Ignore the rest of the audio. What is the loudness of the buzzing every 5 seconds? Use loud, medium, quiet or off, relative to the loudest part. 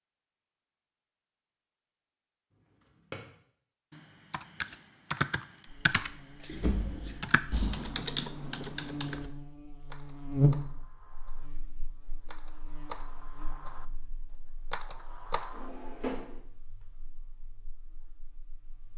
off, medium, loud, quiet.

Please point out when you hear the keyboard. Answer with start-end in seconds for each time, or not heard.
4.0-6.5, 7.2-9.3, 9.9-11.4, 12.2-13.8, 14.7-15.7.